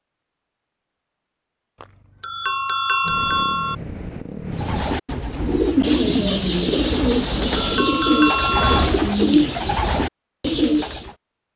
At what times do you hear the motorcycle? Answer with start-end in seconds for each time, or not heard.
3.0-4.8.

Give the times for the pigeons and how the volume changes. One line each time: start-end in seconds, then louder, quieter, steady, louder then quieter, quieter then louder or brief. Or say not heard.
4.5-11.2 steady.